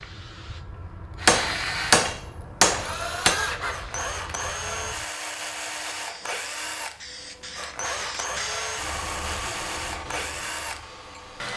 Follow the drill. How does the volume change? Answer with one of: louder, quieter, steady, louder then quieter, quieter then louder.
steady.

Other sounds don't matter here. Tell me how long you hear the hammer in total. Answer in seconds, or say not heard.
2 s.